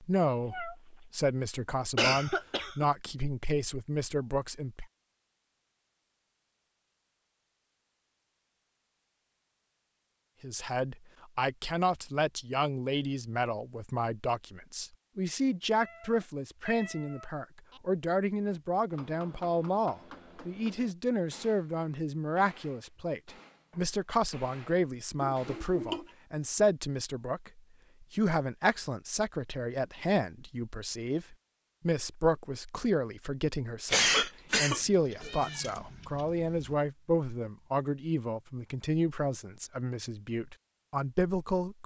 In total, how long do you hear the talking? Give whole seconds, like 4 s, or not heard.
36 s.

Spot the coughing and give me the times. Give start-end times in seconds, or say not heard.
1.9-2.9, 25.2-26.1, 33.9-35.7.